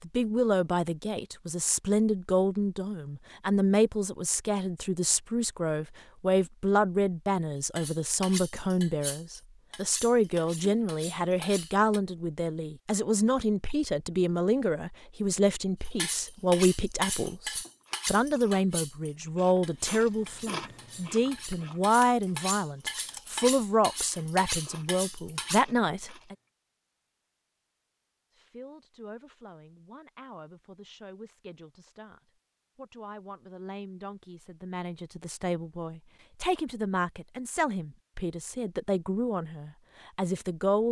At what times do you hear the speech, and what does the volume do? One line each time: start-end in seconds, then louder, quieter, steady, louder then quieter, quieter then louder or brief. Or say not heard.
0.0-26.4 steady
28.3-40.8 louder.